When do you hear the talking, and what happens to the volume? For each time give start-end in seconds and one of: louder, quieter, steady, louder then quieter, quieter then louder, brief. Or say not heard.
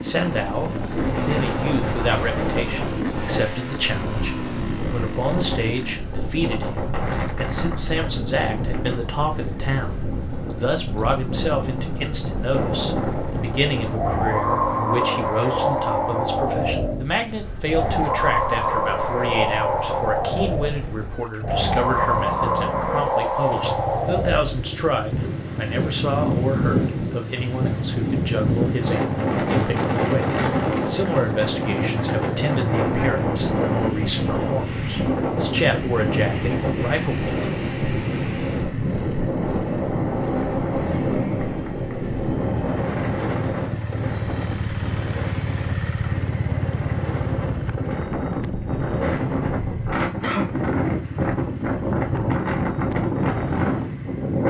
0.0-37.4 steady.